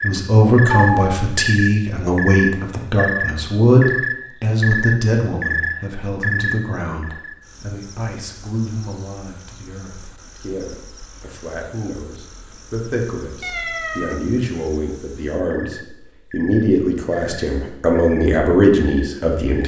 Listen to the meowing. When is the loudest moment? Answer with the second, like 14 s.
1 s.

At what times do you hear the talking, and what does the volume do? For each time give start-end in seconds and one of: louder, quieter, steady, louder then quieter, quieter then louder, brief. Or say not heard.
0.0-19.6 quieter then louder.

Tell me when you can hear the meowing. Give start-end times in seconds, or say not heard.
0.8-1.4, 13.4-14.2.